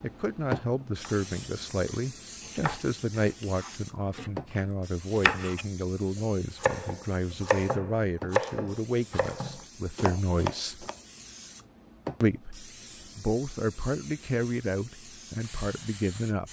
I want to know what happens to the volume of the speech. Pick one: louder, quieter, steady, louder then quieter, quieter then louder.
steady.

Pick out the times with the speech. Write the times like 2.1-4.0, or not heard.
0.0-10.8, 12.2-16.4.